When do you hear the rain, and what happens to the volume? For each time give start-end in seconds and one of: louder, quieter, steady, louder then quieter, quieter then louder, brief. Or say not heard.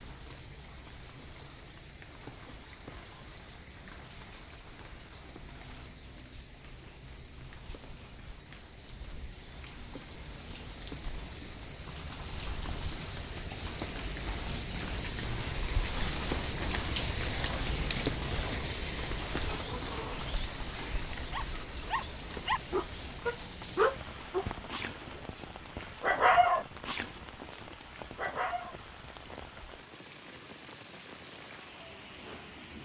0.0-32.8 louder then quieter.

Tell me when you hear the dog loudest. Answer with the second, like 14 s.
26 s.